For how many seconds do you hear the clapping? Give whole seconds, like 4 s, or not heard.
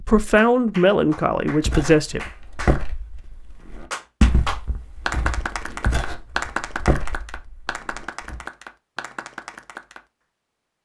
10 s.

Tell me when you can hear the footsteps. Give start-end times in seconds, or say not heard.
1.5-8.4.